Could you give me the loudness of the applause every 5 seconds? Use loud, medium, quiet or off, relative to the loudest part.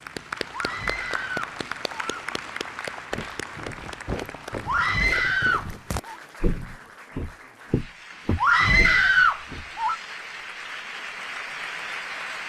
loud, medium, loud.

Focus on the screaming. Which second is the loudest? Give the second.
9 s.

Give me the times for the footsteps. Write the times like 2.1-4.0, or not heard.
3.1-9.7.